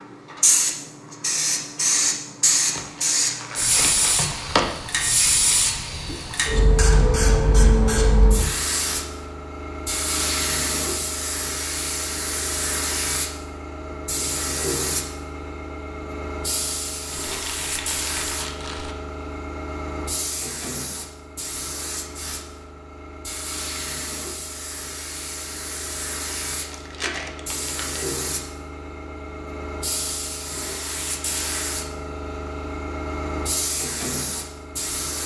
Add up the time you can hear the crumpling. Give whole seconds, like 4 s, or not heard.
5 s.